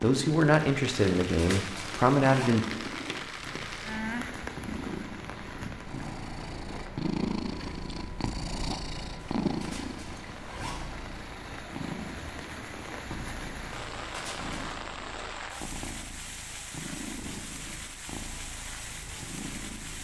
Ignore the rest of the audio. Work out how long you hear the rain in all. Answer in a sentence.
You can hear the rain for 20 seconds altogether.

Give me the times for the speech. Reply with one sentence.
You can hear the speech from 0.0 to 2.6 s.